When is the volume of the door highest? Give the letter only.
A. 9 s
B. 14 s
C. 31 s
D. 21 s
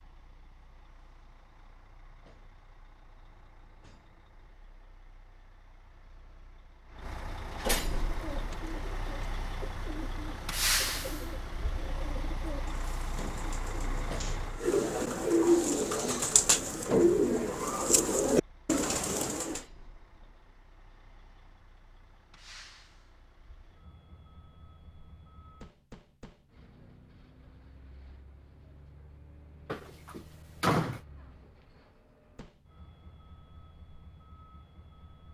C.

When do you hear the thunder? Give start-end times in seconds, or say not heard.
not heard.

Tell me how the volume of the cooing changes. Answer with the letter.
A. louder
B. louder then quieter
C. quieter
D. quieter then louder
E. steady
A.